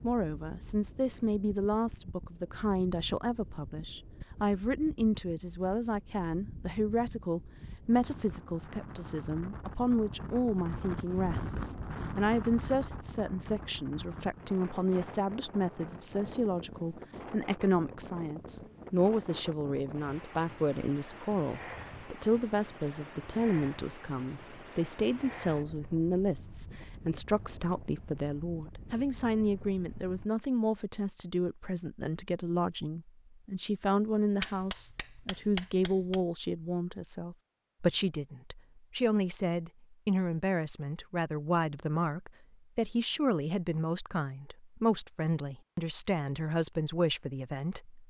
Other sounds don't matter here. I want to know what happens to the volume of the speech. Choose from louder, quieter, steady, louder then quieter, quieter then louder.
steady.